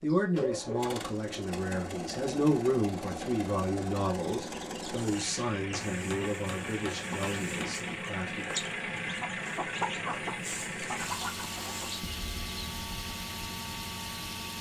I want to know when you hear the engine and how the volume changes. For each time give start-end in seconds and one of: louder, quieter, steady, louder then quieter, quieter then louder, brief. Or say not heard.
0.0-14.5 steady.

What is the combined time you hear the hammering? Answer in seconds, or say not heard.
2 s.